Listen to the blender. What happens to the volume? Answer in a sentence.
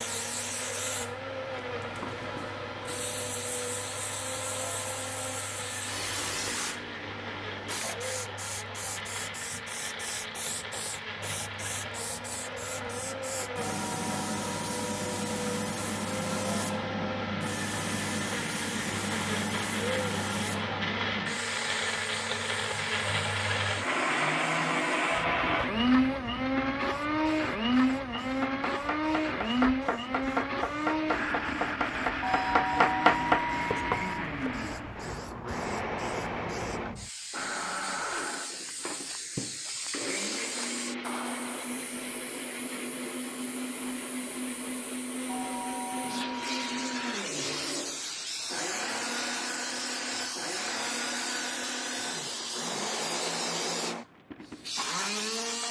The loudness of the blender goes up, then down.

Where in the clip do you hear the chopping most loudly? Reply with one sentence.
The loudest moment of the chopping is at 33 seconds.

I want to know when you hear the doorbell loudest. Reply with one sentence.
The loudest moment of the doorbell is at 33 seconds.